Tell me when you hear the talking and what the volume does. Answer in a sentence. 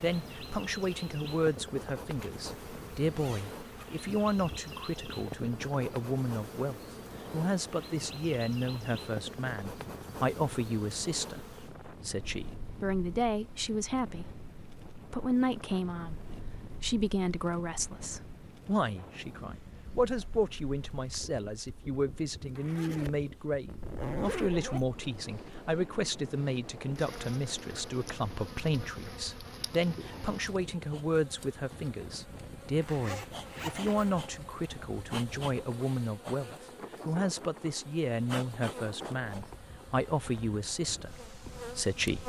You can hear the talking from 0.0 to 42.2 s, at a steady volume.